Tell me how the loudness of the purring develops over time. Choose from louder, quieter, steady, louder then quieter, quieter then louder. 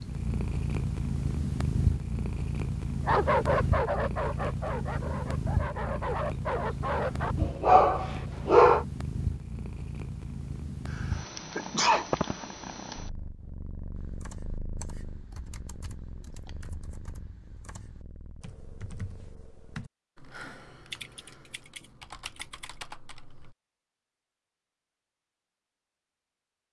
quieter.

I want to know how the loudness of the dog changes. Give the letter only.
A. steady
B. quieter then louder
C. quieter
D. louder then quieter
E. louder
B.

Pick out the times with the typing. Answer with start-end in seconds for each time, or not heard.
13.9-23.6.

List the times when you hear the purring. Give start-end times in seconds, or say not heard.
0.0-19.8.